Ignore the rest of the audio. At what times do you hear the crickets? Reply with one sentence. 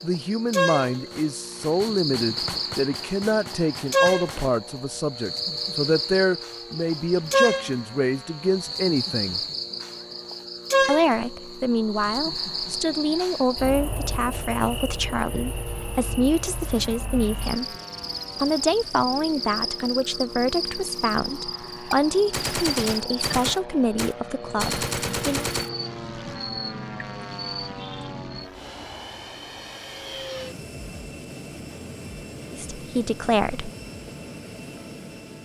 You can hear the crickets from 0.0 to 28.5 s.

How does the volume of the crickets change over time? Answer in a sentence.
The loudness of the crickets goes down.